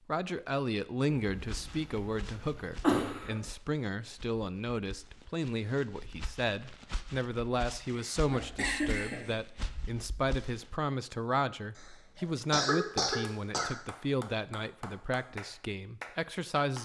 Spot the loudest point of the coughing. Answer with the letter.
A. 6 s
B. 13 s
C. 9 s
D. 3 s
D.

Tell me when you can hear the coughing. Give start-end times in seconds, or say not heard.
1.1-3.4, 7.9-9.3, 11.8-13.7.